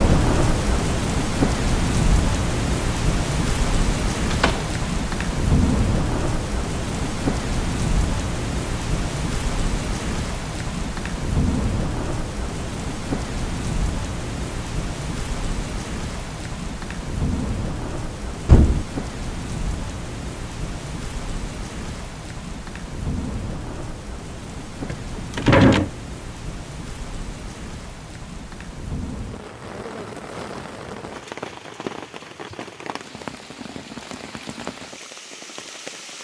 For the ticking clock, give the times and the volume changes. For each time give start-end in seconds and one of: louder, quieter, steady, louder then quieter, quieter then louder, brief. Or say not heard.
not heard.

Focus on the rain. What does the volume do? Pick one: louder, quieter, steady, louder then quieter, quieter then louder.
quieter.